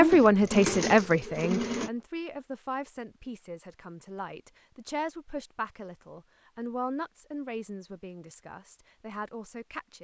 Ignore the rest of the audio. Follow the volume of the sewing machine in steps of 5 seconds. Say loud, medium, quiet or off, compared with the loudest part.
loud, off.